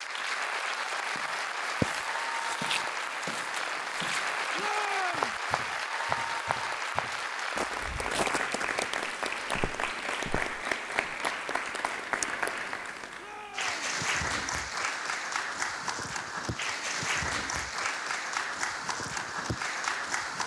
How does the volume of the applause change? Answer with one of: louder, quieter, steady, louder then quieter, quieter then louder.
steady.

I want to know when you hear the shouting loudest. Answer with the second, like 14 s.
5 s.